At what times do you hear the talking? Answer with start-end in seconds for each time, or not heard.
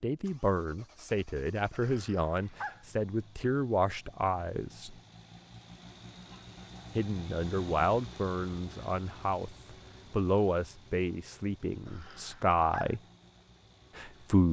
0.0-5.0, 7.0-13.0, 13.9-14.4.